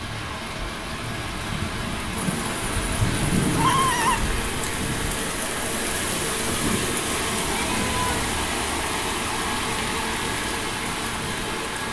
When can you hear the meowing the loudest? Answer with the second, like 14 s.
4 s.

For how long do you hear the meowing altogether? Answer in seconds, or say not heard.
3 s.